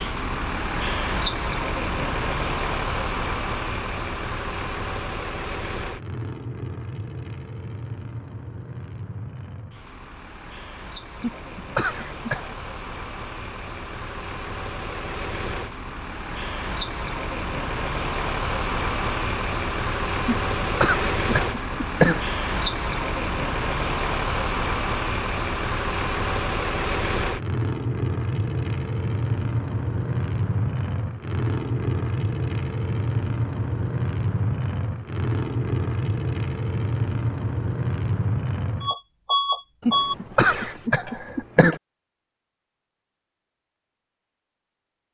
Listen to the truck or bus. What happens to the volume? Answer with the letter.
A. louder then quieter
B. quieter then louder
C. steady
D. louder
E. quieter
B.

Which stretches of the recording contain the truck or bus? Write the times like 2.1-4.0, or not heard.
0.0-40.1.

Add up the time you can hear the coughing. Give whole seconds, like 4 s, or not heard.
5 s.